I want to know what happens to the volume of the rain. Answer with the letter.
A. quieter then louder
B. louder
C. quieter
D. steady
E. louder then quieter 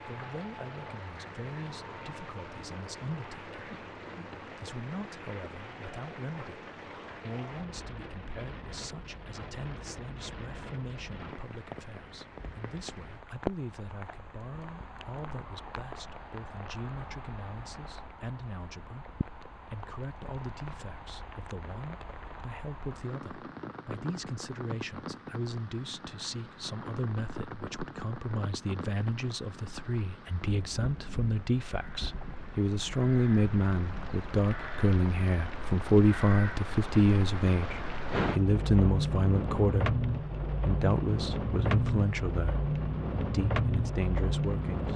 B.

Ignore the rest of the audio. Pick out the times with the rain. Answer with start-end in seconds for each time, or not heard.
0.0-44.9.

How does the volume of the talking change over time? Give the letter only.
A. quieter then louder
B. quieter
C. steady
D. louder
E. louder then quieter
D.